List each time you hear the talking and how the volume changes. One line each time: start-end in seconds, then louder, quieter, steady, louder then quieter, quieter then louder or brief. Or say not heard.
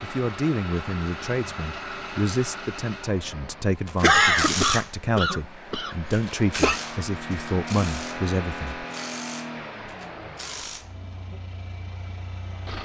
0.0-8.8 steady.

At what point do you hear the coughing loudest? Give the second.
4 s.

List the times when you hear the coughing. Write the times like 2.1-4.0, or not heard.
4.0-6.8.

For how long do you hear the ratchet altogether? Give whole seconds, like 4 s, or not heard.
7 s.